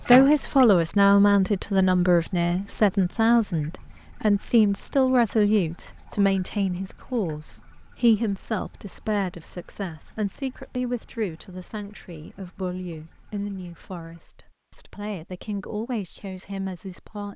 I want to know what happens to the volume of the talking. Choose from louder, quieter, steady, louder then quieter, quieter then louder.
quieter.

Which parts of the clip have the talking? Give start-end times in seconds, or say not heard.
0.0-17.3.